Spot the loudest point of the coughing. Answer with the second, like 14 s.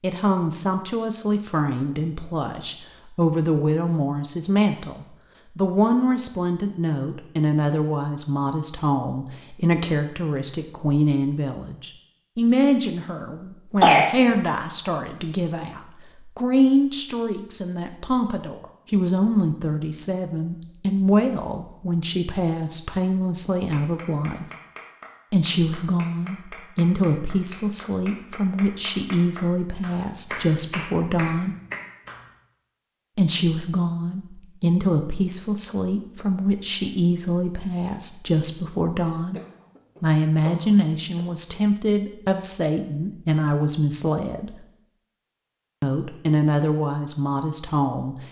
14 s.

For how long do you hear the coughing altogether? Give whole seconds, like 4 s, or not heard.
3 s.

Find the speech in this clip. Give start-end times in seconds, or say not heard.
0.0-24.4, 25.3-31.6, 33.1-39.4, 40.0-44.6, 45.8-48.2.